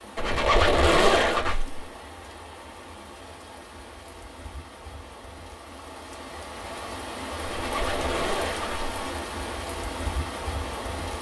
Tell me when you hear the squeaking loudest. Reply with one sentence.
The loudest moment of the squeaking is at 1 second.